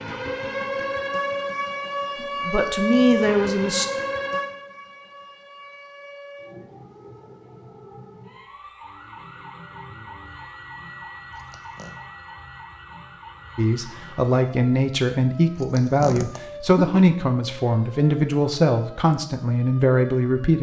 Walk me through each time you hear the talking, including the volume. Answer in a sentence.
The talking can be heard briefly from 2.2 to 3.9 s; and from 13.6 to 20.5 s, at a steady volume.